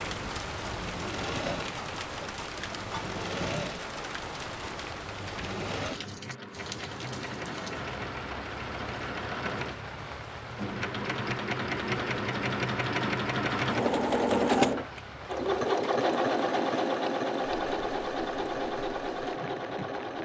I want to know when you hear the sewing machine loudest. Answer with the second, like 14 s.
14 s.